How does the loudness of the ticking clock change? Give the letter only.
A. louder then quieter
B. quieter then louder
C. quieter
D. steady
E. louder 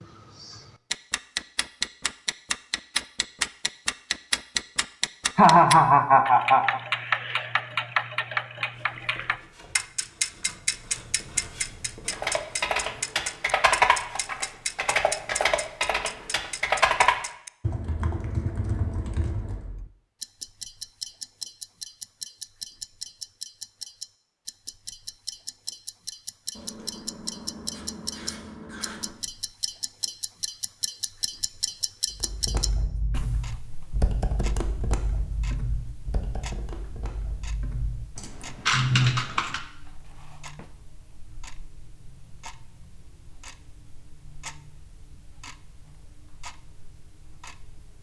C.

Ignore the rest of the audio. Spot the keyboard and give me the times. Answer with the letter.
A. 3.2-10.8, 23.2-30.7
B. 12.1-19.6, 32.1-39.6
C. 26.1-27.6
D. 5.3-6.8
B.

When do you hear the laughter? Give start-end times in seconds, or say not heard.
5.3-6.8.